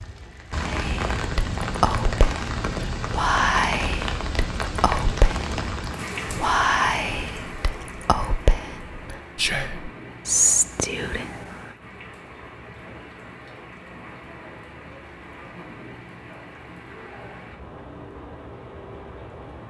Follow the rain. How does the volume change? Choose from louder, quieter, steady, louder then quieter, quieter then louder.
quieter.